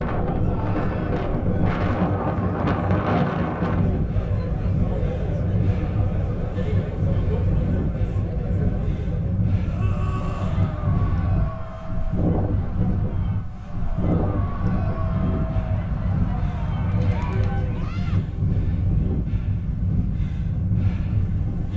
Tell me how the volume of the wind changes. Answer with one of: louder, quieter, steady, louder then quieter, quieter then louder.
steady.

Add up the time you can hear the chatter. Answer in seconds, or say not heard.
18 s.